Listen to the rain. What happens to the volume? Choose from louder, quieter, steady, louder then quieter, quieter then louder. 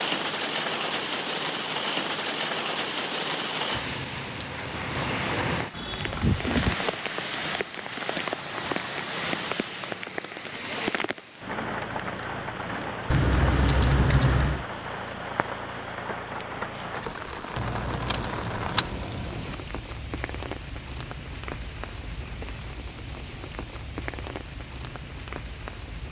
quieter.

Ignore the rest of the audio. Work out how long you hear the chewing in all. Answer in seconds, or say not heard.
not heard.